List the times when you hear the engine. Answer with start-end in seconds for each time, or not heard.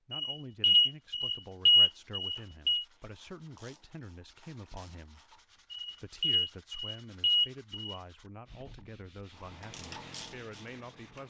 9.3-11.2.